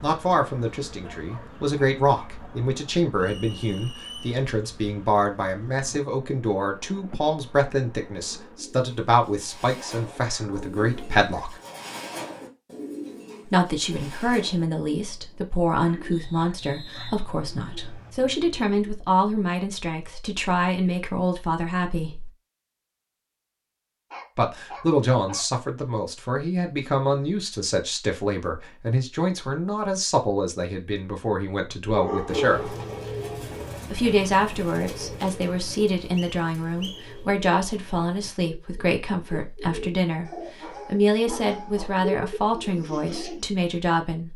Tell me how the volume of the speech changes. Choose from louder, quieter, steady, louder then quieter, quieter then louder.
steady.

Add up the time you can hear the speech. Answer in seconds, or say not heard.
39 s.